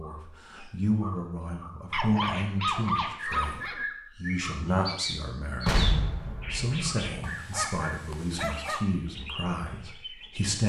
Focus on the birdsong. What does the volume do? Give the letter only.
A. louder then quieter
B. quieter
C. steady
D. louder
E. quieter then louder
A.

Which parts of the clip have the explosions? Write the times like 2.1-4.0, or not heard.
5.7-7.1.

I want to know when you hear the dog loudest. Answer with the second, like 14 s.
3 s.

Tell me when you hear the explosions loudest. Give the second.
6 s.